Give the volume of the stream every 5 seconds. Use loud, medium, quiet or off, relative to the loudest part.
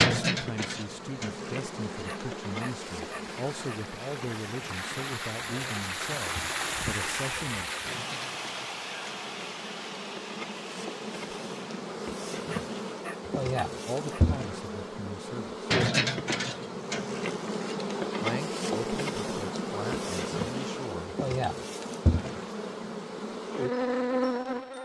medium, loud, medium, off, off.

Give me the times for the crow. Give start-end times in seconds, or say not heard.
not heard.